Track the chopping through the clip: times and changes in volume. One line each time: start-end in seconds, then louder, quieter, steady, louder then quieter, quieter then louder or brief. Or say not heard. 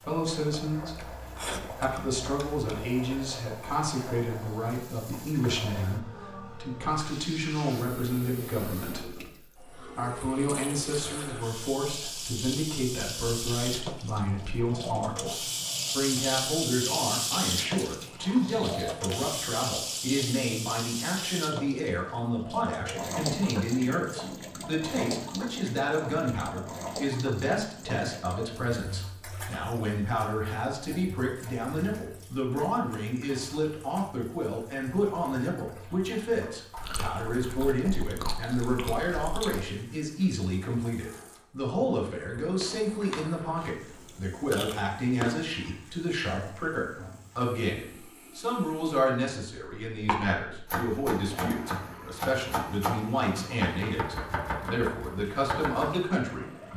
50.0-56.0 steady.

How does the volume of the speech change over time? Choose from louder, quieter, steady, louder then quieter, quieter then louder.
steady.